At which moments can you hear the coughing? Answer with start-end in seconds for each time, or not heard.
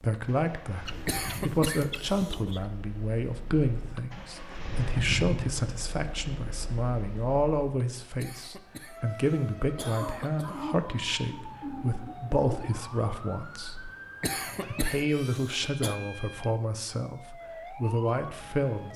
1.1-2.6, 8.2-10.8, 14.2-15.9.